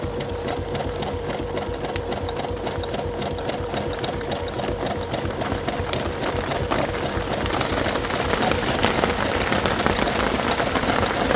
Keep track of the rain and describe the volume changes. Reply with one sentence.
The loudness of the rain goes up.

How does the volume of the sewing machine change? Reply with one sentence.
The volume of the sewing machine stays about the same.